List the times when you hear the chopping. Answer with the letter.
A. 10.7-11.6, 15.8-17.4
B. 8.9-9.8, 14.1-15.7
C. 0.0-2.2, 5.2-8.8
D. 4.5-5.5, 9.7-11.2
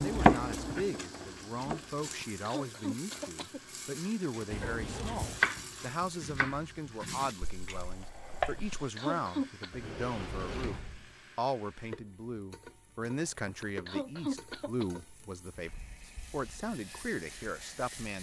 C.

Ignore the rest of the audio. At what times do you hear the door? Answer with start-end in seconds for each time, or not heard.
4.5-5.5, 9.7-11.2.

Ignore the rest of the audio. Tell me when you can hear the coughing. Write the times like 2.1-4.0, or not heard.
1.8-3.6, 8.3-9.8, 13.2-14.8.